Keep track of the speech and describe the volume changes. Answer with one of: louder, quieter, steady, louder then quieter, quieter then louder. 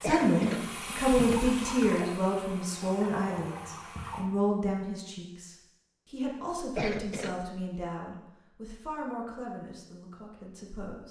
quieter.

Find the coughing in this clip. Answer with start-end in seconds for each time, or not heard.
0.0-0.8, 6.8-7.4.